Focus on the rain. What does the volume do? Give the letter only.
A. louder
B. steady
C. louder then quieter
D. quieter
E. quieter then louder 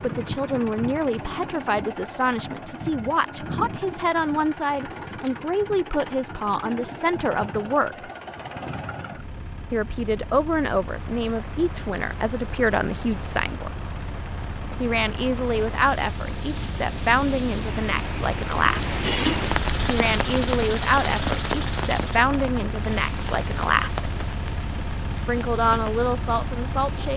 C.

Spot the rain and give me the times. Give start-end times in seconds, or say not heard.
10.8-27.1.